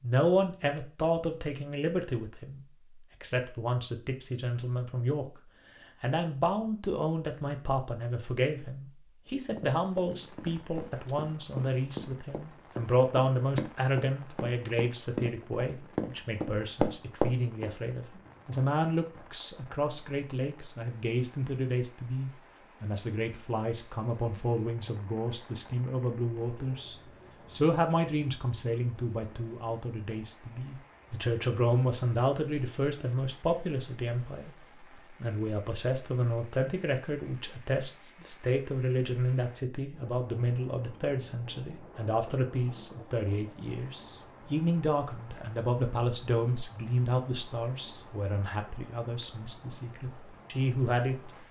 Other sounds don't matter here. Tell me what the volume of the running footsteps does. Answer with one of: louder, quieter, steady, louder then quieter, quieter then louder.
louder.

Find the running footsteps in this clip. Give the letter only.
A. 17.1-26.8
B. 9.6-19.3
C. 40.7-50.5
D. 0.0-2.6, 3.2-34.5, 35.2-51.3
B.